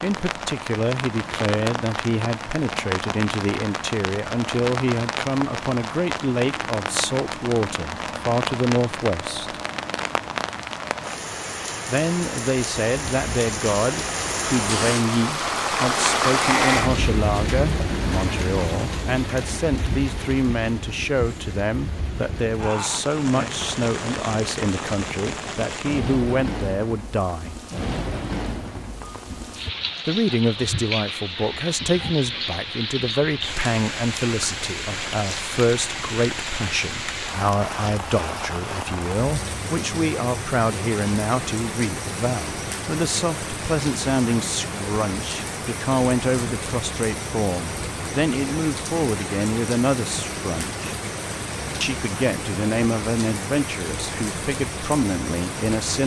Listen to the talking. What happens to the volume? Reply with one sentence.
The volume of the talking stays about the same.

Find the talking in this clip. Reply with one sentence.
You can hear the talking from 0.0 to 9.6 s, from 11.8 to 27.6 s, from 30.1 to 51.0 s and from 51.8 to 56.0 s.